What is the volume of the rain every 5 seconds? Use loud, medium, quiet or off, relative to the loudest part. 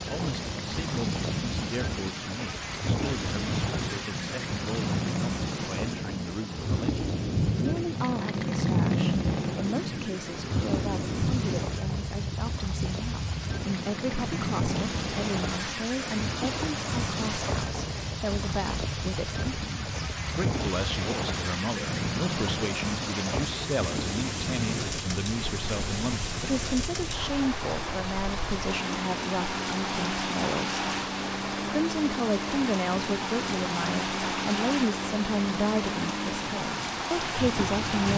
loud, medium, medium, loud, loud, loud, loud, loud.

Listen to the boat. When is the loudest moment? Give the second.
9 s.